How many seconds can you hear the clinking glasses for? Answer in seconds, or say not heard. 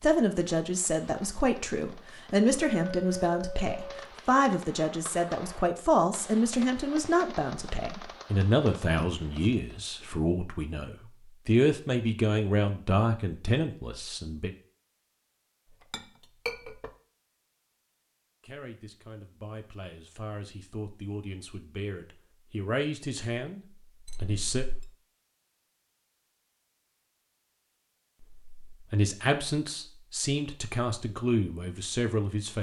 3 s.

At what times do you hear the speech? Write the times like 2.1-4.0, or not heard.
0.0-14.5, 18.4-23.6, 24.2-24.6, 28.2-32.5.